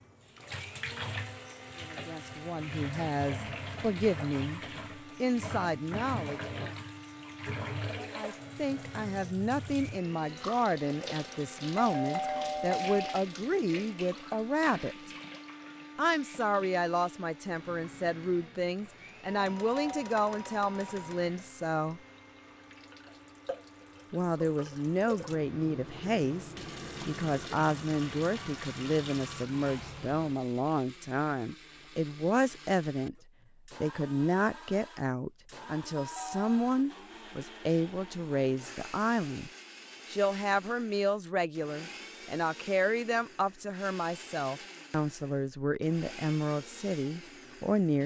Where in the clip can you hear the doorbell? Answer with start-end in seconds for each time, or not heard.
11.3-13.2, 19.2-21.2, 36.0-36.5.